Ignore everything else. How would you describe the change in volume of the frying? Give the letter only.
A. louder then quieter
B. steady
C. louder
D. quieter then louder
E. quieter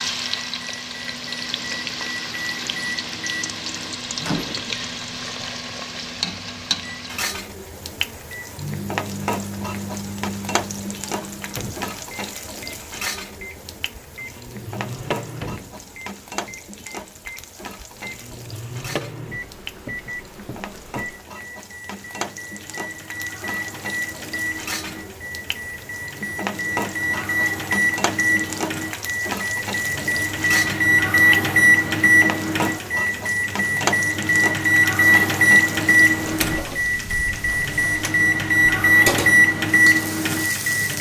D.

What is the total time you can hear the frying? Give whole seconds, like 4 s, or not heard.
41 s.